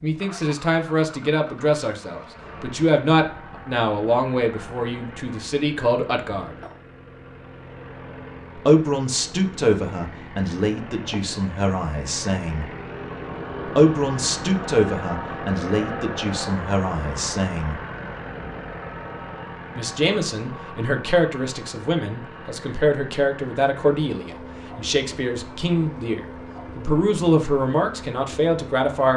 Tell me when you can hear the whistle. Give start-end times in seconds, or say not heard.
not heard.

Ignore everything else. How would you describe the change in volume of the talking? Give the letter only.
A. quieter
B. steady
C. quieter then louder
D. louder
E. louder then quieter
B.